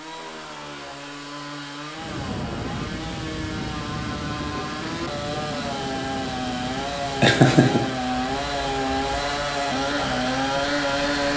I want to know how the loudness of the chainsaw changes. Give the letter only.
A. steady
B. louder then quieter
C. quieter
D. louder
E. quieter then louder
D.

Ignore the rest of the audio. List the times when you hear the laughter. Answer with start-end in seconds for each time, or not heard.
7.2-8.0.